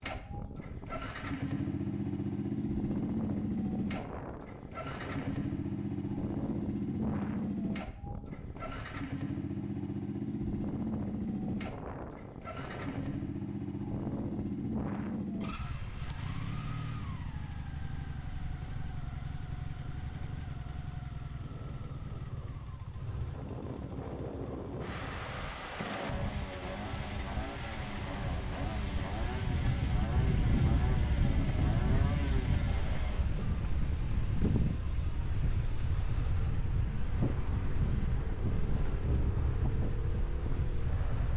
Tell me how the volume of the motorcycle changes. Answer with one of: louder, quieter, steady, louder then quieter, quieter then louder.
quieter.